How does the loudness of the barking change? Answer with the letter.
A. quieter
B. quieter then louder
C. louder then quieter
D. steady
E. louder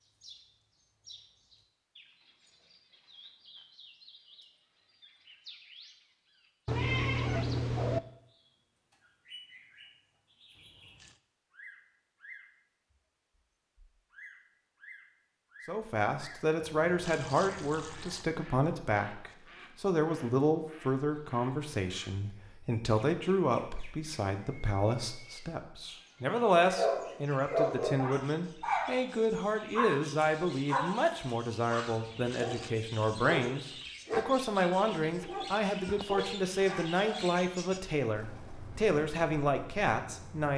A.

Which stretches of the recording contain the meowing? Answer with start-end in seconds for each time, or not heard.
6.7-8.0, 34.9-36.7.